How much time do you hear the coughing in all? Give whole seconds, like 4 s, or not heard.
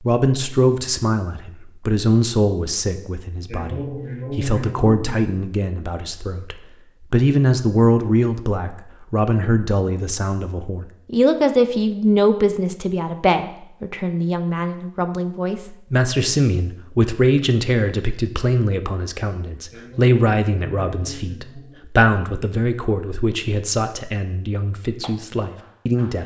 4 s.